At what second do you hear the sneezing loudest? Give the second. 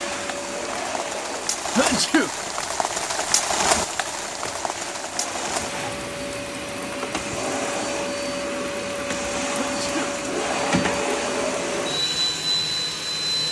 2 s.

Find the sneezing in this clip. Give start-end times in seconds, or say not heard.
1.8-2.3, 9.6-10.2.